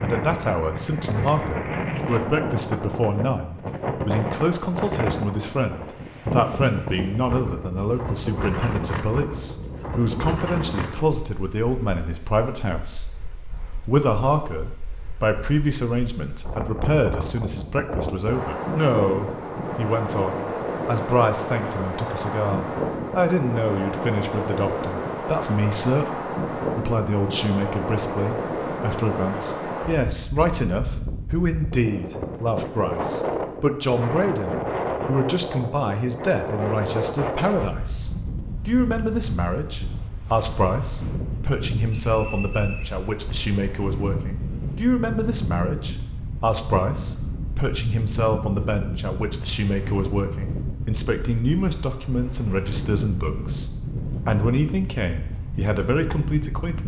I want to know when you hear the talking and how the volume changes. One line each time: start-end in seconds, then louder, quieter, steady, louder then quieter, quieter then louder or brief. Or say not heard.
0.0-13.1 steady
13.8-56.8 steady.